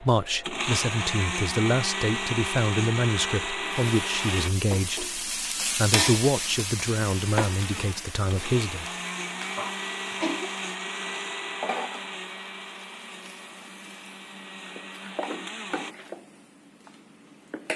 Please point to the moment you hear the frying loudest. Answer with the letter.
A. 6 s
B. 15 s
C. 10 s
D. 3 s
A.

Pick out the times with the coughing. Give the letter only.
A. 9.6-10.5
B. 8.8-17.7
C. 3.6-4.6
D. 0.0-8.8
A.